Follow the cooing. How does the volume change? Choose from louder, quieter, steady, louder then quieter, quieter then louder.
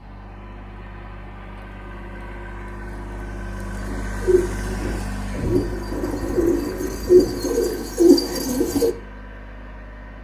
louder.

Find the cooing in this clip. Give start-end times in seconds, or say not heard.
3.8-8.9.